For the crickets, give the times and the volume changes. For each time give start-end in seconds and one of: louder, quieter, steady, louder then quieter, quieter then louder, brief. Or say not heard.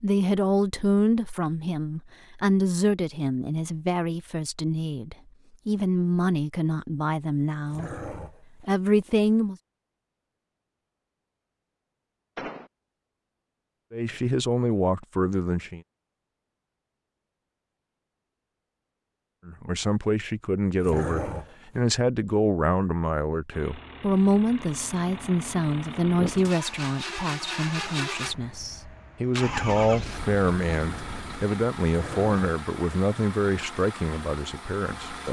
not heard.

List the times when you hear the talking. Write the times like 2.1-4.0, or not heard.
0.0-7.9, 8.6-9.6, 13.9-15.8, 19.4-35.2.